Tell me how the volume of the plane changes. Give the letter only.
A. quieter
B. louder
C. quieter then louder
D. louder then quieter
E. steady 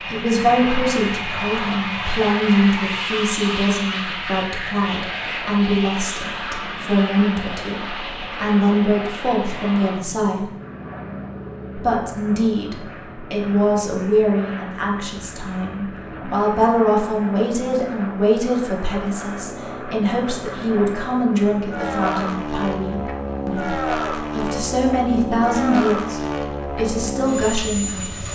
C.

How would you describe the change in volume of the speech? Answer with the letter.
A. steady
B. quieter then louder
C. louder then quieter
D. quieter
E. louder
A.